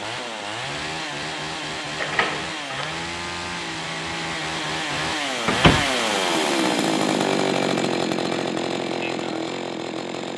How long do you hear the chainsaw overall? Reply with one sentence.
You can hear the chainsaw for 10 seconds altogether.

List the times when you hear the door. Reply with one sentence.
You can hear the door from 1.9 to 3.0 s and from 5.5 to 5.9 s.